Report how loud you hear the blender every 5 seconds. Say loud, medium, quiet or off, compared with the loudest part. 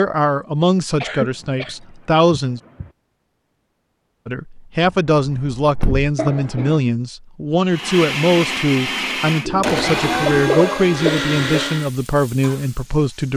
off, loud, loud.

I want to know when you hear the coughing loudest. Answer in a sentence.
The volume of the coughing peaks at 10 seconds.